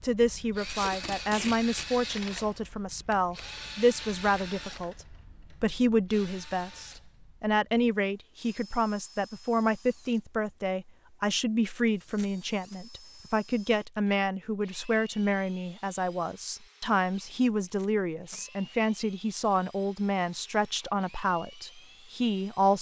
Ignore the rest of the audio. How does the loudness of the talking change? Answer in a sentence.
The loudness of the talking stays about the same.